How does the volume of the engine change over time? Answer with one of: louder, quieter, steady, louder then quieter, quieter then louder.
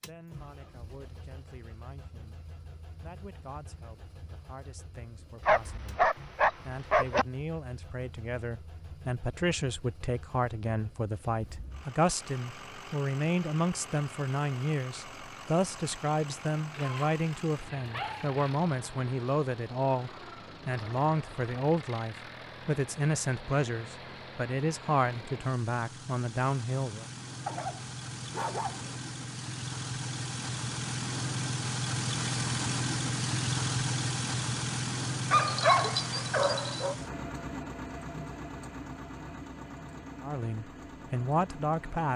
louder.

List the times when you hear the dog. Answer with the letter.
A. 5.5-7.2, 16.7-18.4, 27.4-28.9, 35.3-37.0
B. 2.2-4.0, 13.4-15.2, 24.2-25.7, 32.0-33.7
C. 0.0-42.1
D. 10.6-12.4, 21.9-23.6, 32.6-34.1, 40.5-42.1
A.